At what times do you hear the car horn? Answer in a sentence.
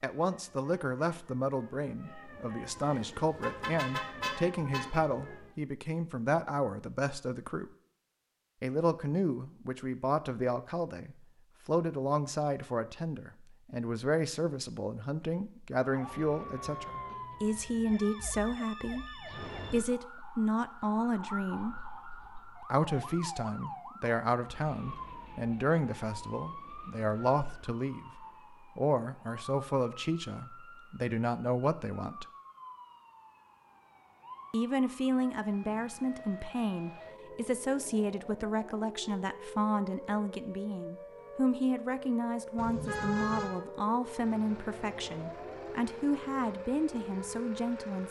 You can hear the car horn from 2.8 to 5.0 s and from 42.5 to 43.5 s.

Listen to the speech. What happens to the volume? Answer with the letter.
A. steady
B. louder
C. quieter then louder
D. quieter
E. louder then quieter
A.